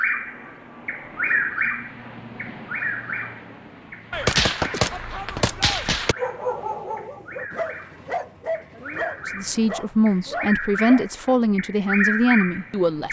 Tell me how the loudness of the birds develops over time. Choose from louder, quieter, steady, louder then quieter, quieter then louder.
quieter then louder.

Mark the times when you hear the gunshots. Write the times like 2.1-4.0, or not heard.
4.1-6.2.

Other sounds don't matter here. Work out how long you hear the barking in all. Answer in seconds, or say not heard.
5 s.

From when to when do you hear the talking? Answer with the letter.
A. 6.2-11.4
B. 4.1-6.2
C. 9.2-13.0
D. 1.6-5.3
C.